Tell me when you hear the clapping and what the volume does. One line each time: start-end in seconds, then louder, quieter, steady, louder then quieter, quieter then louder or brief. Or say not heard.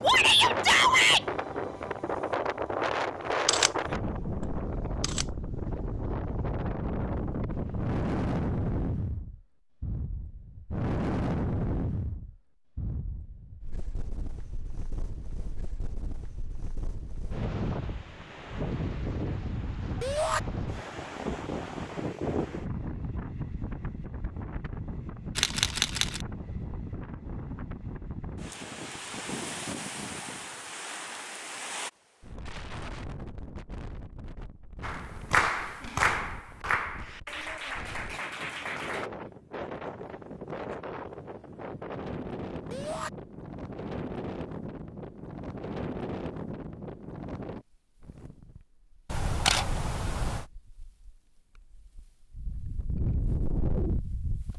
34.8-39.1 quieter.